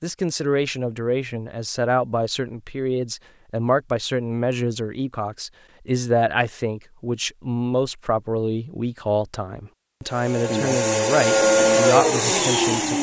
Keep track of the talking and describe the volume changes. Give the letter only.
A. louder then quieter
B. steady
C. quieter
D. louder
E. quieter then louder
B.